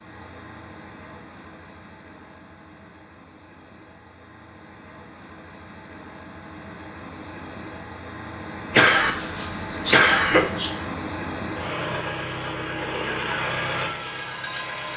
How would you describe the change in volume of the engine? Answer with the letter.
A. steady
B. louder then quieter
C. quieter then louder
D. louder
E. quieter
D.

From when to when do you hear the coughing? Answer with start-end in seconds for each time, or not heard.
8.7-10.7.